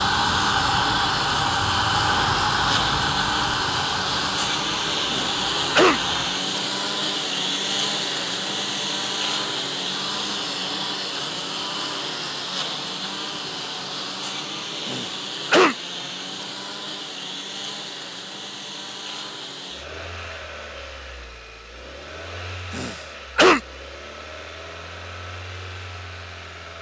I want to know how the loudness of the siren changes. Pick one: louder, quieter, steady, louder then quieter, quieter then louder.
quieter.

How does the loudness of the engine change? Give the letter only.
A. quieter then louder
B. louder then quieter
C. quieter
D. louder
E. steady
C.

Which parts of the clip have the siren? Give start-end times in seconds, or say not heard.
0.0-6.5.